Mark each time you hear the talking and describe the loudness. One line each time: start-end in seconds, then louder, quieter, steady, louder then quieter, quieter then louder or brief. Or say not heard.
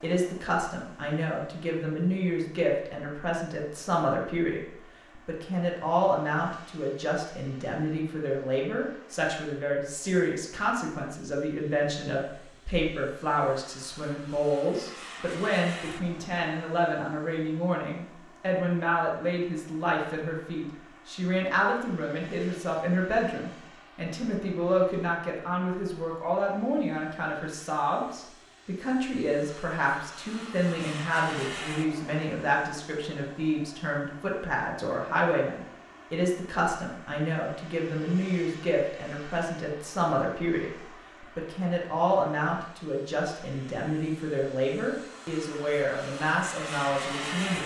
0.0-47.6 steady.